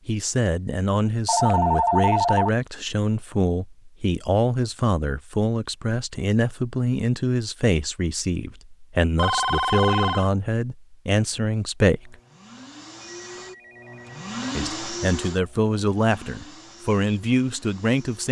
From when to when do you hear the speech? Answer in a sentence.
You can hear the speech from 0.1 to 12.2 s and from 14.6 to 18.2 s.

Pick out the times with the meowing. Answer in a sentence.
The meowing can't be heard in this clip.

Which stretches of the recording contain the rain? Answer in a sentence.
You can't hear the rain here.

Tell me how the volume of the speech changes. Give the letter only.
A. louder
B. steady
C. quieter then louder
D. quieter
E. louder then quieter
B.